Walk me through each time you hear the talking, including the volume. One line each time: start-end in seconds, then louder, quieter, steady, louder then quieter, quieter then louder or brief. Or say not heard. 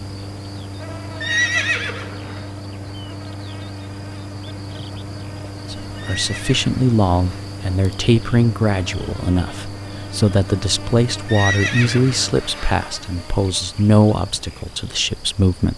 5.7-15.7 steady.